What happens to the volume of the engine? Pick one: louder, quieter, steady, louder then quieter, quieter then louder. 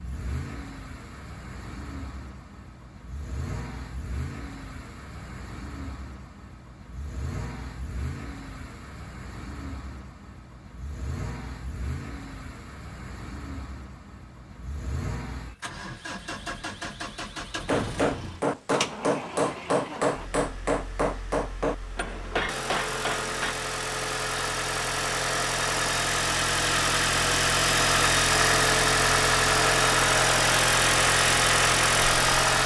louder.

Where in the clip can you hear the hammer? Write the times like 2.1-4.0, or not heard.
17.6-23.6.